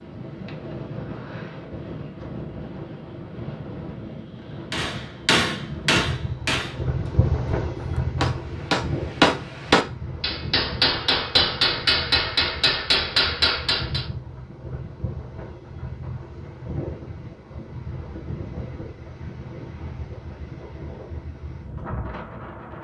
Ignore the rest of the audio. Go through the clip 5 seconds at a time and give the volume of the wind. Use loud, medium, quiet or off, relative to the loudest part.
medium, loud, medium, medium, medium.